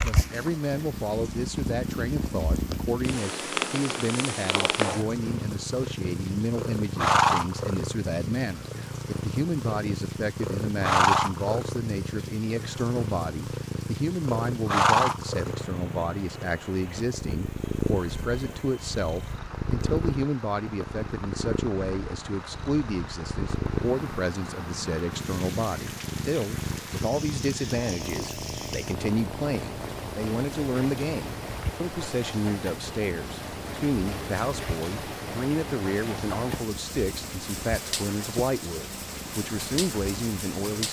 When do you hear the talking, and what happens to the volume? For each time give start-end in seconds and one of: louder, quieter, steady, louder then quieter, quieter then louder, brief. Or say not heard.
0.0-40.8 steady.